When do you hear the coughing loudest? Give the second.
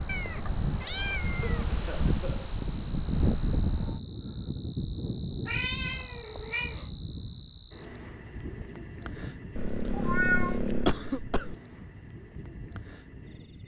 11 s.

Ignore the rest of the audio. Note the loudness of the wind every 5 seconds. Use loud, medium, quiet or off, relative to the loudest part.
loud, medium, quiet.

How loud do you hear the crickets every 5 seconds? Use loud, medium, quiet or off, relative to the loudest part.
loud, loud, medium.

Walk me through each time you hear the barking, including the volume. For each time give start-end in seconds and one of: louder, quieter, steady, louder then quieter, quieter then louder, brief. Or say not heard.
not heard.